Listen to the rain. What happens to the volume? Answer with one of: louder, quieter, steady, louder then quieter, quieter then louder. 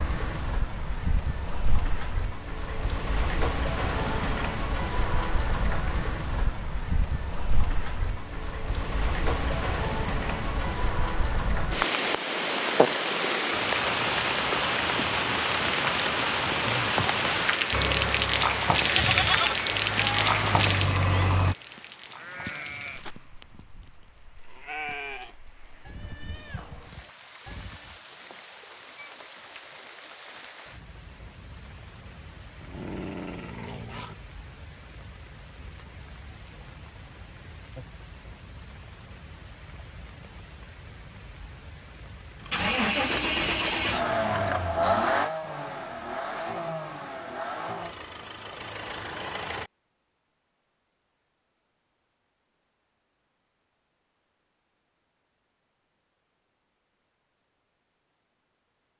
louder then quieter.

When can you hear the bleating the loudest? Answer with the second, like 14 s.
19 s.